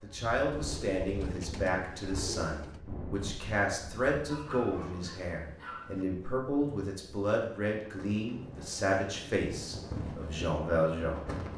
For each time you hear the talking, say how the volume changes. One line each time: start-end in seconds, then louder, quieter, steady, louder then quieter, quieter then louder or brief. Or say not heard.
0.0-11.2 steady.